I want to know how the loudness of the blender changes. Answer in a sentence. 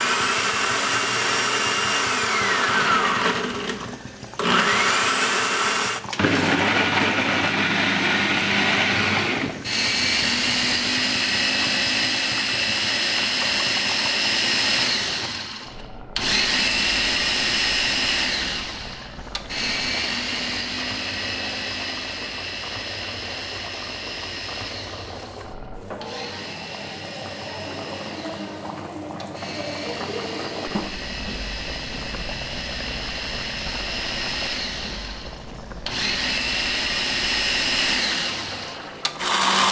The loudness of the blender goes down, then up.